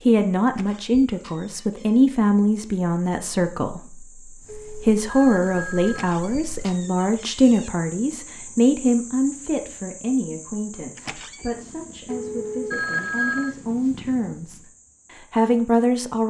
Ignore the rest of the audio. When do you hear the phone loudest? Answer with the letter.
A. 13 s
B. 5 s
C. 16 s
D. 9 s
A.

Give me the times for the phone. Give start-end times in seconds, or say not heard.
4.5-6.2, 12.1-13.6.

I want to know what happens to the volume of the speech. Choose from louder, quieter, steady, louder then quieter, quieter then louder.
quieter then louder.